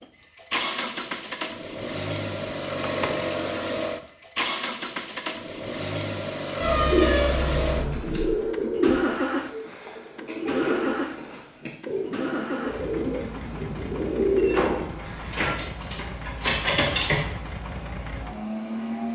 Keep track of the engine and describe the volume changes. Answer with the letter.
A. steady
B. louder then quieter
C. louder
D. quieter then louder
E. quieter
E.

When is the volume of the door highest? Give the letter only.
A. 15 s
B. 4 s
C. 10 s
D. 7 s
A.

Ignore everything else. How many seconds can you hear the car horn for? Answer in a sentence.
You can hear the car horn for 2 seconds altogether.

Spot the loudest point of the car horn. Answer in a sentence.
The volume of the car horn peaks at 7 seconds.